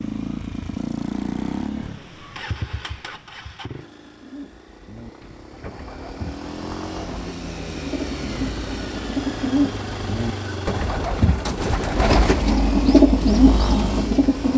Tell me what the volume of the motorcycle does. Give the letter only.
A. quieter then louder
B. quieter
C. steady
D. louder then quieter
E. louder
A.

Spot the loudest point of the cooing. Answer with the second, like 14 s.
13 s.